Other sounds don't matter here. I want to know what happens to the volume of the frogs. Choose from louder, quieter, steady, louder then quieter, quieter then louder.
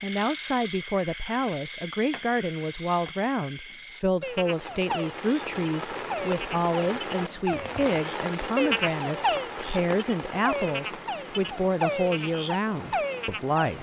louder.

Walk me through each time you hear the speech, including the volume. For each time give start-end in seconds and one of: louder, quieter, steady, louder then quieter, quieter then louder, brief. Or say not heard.
0.0-13.7 steady.